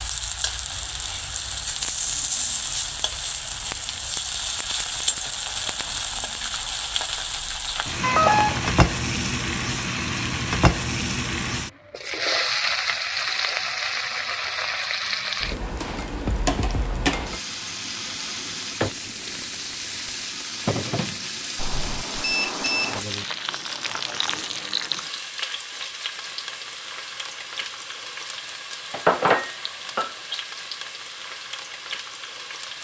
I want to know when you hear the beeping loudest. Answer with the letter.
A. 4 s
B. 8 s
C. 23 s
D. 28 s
B.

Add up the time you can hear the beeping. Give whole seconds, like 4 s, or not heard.
2 s.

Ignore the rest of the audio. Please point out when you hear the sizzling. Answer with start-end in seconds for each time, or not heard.
0.0-32.8.